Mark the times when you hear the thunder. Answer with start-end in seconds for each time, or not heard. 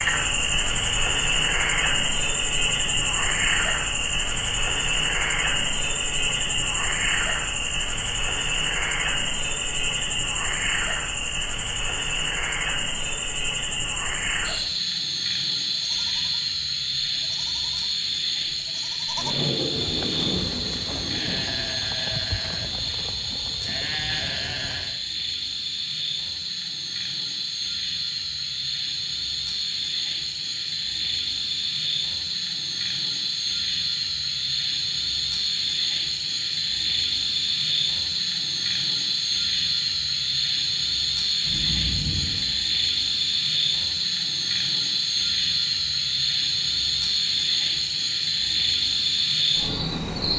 19.1-21.5, 41.4-42.5.